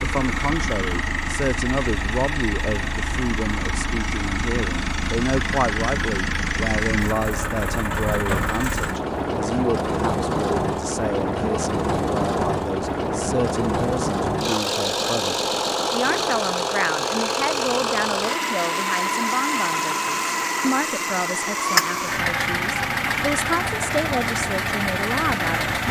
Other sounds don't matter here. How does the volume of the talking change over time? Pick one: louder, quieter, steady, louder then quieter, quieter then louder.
steady.